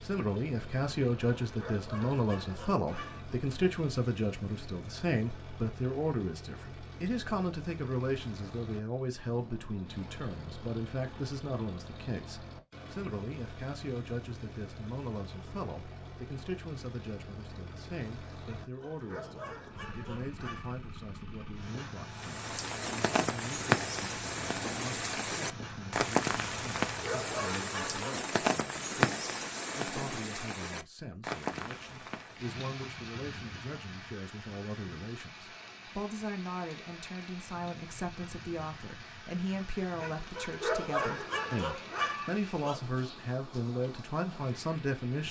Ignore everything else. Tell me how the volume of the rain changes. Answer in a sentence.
The loudness of the rain goes down.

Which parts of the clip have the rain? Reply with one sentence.
The rain can be heard from 22.1 to 45.2 s.